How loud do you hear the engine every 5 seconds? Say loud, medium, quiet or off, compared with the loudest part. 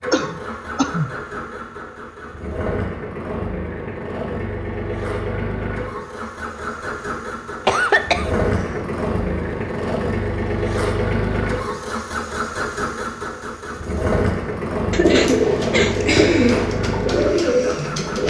medium, loud, loud, loud.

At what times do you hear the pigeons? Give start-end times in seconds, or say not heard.
15.0-18.2.